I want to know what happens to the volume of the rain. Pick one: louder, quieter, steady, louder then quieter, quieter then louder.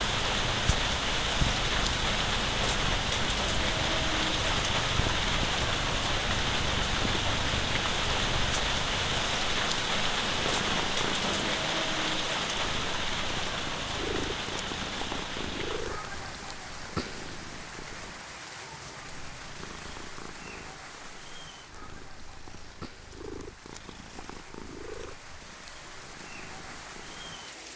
quieter.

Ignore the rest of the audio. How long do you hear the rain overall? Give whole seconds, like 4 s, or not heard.
28 s.